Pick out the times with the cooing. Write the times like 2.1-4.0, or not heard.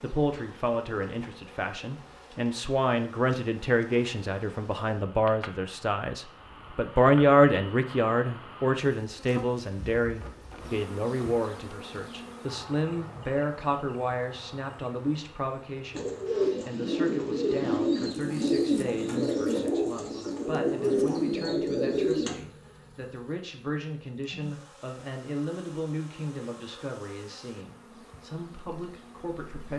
15.9-22.4.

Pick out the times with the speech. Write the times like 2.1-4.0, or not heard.
0.0-29.7.